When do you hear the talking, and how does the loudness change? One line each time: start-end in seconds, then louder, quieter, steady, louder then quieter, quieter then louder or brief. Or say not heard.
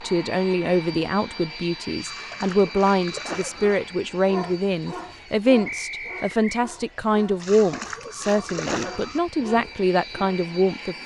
0.0-11.0 steady.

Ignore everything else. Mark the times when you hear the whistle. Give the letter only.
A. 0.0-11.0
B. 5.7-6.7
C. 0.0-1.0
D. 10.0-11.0
B.